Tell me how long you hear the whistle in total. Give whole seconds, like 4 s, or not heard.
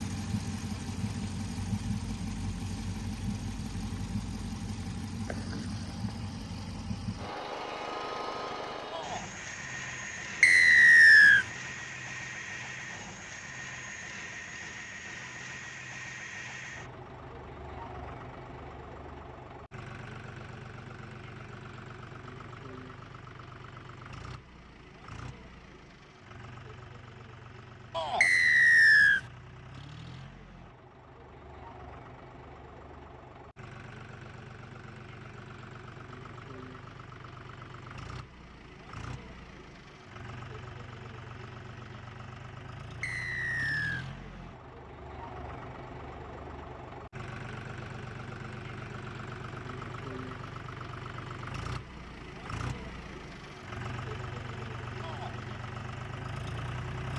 3 s.